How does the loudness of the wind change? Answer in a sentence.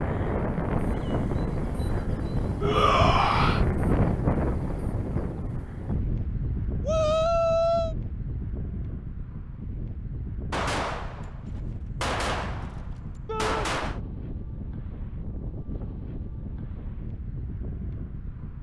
The volume of the wind goes down.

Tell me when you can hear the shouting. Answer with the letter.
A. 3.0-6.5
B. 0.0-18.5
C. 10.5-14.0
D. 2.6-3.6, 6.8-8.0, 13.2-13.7
D.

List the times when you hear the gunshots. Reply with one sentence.
You can hear the gunshots from 10.5 to 14.0 s.